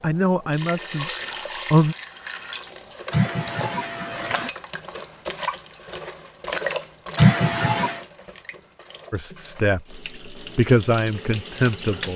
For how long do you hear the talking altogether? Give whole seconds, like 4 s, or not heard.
5 s.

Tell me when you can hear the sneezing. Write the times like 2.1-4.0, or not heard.
3.1-4.5, 7.2-8.0.